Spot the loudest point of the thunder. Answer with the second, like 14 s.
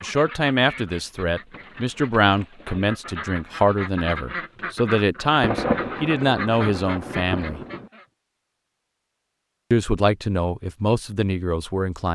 6 s.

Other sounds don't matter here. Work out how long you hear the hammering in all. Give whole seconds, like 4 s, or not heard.
not heard.